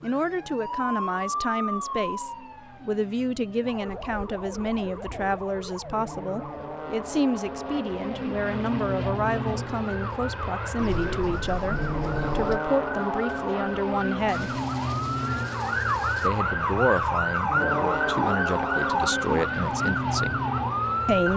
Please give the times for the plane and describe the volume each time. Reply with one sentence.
The plane can be heard from 0.0 to 21.3 s, getting louder.